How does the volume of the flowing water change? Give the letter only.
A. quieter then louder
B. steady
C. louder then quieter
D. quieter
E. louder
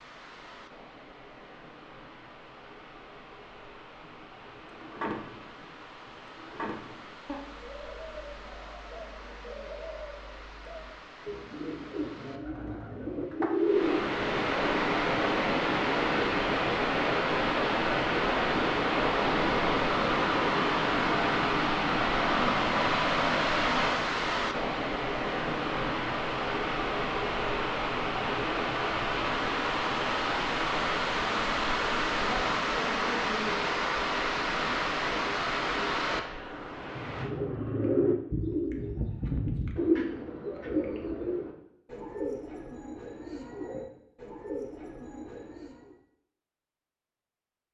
E.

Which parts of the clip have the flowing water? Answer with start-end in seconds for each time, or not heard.
0.0-37.3.